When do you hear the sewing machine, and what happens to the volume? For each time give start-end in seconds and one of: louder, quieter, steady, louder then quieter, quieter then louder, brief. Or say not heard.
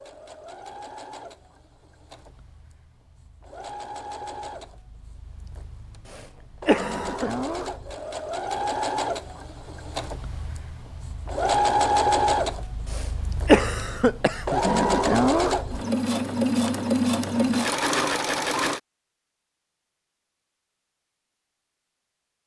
0.0-18.8 louder.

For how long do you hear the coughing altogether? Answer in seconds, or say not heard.
3 s.